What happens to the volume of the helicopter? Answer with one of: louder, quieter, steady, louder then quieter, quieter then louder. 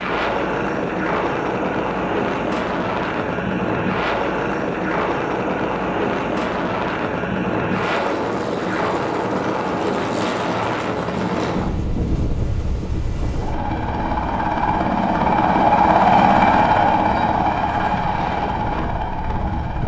louder.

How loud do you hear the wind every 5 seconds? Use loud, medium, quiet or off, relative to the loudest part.
loud, loud, loud, medium.